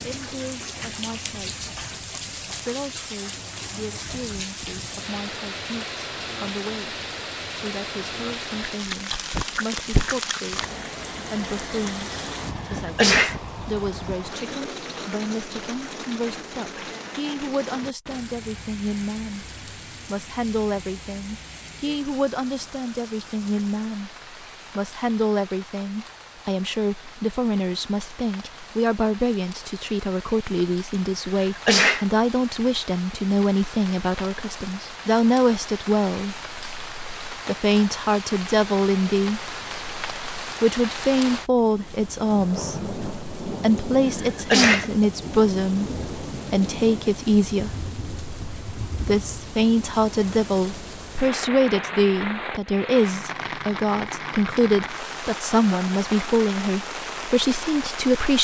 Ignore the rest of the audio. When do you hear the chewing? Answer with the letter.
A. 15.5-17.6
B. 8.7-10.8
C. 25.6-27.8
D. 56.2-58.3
B.